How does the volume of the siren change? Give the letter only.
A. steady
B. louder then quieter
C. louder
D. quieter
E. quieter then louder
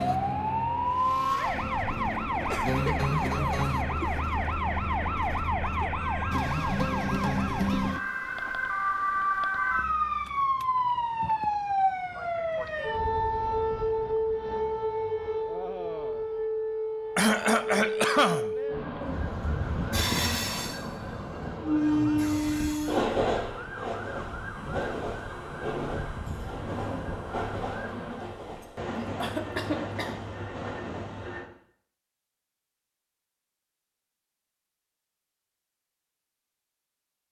D.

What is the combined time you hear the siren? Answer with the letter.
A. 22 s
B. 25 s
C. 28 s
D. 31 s
C.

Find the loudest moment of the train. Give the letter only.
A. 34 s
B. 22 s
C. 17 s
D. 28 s
B.